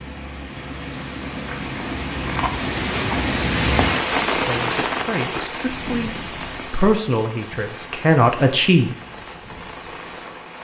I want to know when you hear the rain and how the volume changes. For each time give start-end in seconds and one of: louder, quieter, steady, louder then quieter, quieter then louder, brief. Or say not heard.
0.0-10.5 louder then quieter.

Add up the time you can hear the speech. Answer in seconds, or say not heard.
5 s.